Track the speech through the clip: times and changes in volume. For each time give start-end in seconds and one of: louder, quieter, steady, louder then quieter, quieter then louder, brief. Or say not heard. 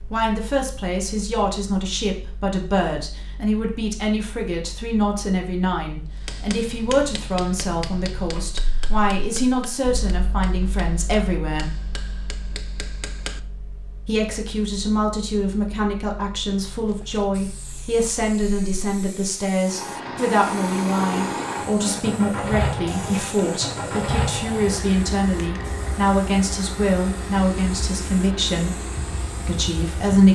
0.1-11.7 steady
14.1-28.8 steady
29.4-30.3 brief.